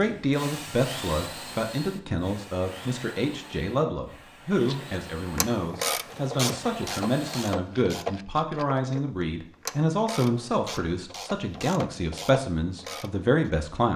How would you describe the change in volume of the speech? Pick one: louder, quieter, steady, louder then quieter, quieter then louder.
steady.